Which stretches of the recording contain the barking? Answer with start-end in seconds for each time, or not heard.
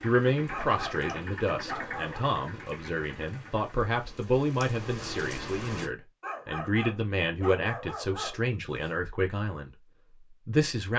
0.5-2.2, 6.2-8.9.